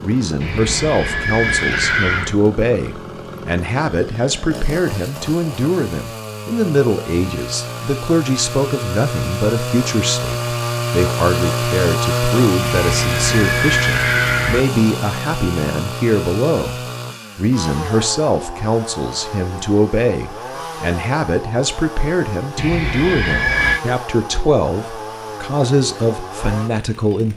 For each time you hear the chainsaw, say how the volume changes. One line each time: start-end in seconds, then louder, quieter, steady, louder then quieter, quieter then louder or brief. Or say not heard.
0.0-27.3 louder then quieter.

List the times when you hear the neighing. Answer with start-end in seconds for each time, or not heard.
0.4-2.4, 12.6-14.7, 22.6-23.8.